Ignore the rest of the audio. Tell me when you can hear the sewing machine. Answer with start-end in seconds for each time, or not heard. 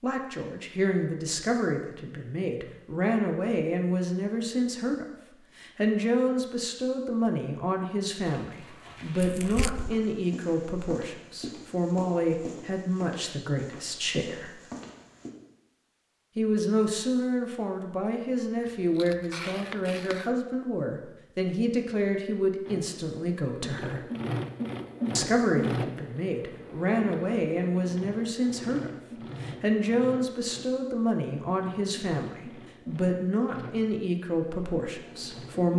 22.6-35.7.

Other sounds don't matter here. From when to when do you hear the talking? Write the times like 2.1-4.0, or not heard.
0.0-14.6, 16.4-24.0, 25.1-35.7.